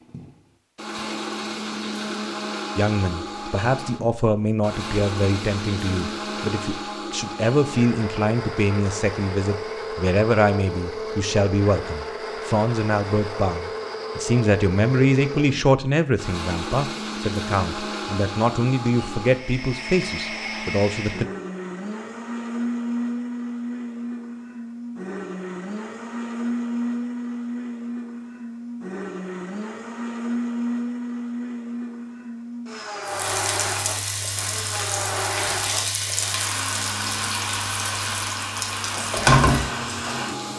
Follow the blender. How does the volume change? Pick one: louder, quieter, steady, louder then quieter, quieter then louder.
steady.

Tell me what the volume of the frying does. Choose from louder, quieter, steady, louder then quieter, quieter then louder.
louder.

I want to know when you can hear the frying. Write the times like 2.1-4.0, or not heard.
33.0-40.5.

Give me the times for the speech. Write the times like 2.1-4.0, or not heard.
2.8-21.2.